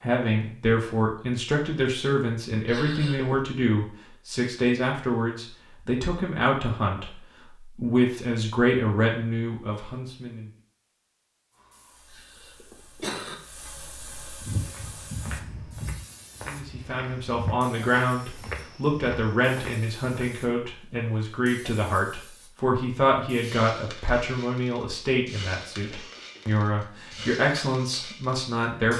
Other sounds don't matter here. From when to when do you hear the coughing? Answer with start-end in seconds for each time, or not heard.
2.6-3.4, 12.1-13.3, 25.9-26.6.